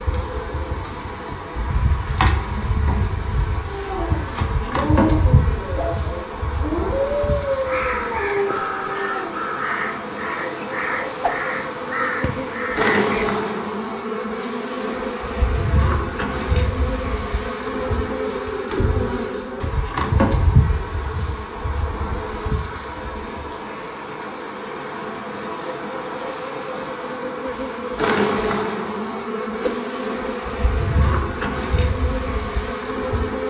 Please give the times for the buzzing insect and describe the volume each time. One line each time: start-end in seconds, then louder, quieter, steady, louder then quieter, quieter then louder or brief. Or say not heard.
0.0-33.4 steady.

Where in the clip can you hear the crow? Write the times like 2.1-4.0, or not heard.
7.5-13.2.